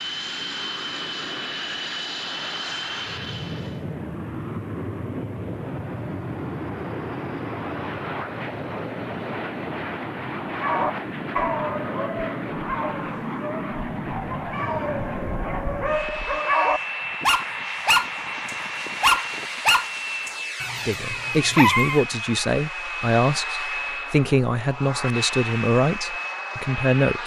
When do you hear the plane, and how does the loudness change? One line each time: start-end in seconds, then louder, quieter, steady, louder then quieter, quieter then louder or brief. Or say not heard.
0.0-27.2 steady.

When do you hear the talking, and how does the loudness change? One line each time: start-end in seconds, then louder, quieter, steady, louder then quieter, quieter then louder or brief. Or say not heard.
20.9-27.2 steady.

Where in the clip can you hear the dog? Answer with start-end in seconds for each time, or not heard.
10.5-22.1.